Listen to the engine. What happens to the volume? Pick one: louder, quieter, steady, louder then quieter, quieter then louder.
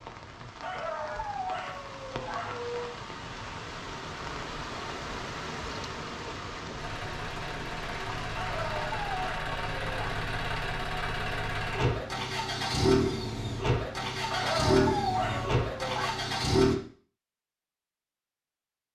louder.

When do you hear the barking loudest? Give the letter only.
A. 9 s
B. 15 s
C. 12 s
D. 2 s
B.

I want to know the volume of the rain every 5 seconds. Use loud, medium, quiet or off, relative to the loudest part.
loud, loud, off, off.